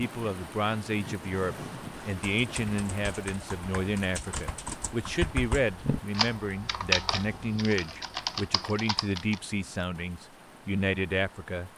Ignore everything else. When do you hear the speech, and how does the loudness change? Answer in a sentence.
You can hear the speech from 0.0 to 11.7 s, at a steady volume.